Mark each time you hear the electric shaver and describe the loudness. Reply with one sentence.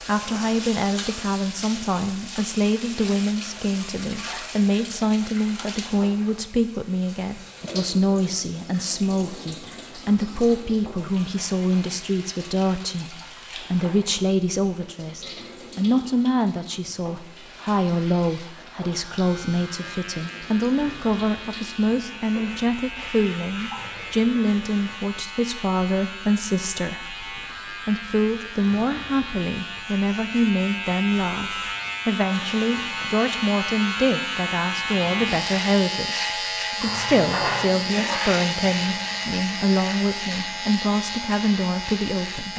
You can hear the electric shaver from 18.9 to 42.5 s, getting louder.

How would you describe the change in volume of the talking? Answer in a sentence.
The volume of the talking stays about the same.